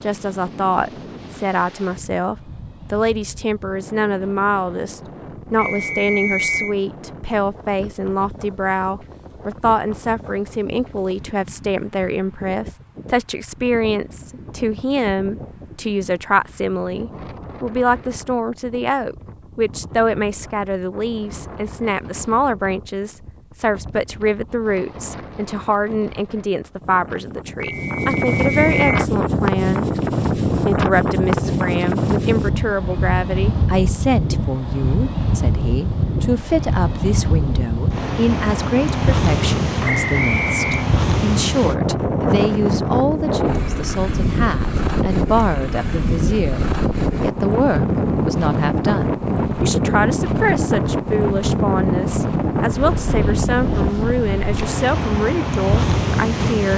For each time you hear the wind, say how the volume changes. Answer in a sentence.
You can hear the wind from 0.0 to 56.7 s, getting louder.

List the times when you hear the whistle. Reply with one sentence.
You can hear the whistle from 5.5 to 6.8 s, from 27.6 to 29.1 s and from 39.9 to 40.9 s.